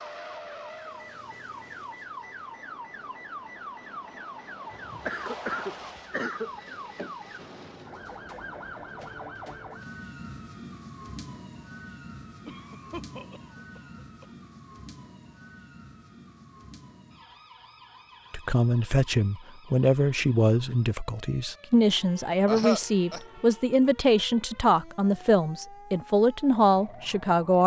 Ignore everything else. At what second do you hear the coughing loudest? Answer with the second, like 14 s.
23 s.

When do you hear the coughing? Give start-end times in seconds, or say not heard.
4.7-6.5, 12.4-14.2, 22.4-23.2.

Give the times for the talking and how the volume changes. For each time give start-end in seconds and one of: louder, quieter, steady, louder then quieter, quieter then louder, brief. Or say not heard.
18.3-27.6 steady.